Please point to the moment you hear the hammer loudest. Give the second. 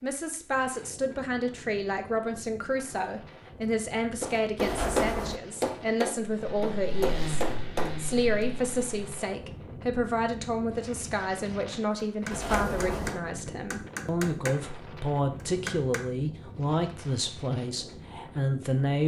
5 s.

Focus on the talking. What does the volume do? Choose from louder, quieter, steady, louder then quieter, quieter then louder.
steady.